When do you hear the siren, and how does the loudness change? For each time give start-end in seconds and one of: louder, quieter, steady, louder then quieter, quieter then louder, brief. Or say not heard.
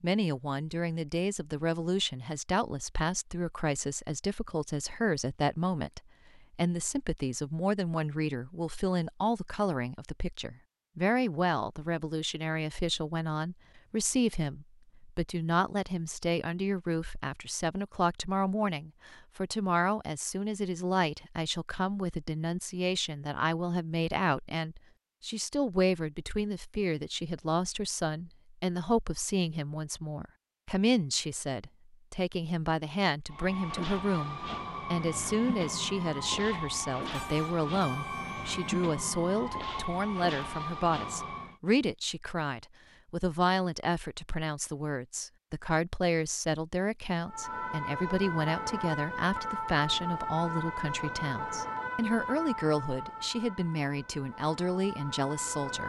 33.2-41.6 steady
47.2-55.8 quieter.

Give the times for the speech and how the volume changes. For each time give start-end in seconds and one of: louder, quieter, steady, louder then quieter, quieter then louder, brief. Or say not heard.
0.0-55.8 steady.